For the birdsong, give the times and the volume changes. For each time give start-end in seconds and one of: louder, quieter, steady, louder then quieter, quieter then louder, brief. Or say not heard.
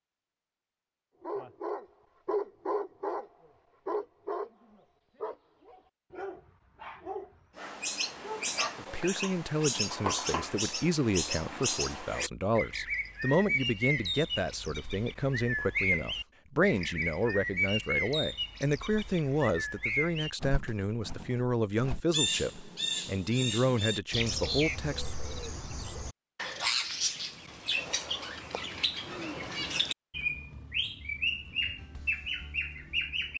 7.5-33.3 steady.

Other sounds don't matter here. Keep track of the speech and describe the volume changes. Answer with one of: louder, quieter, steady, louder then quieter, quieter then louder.
steady.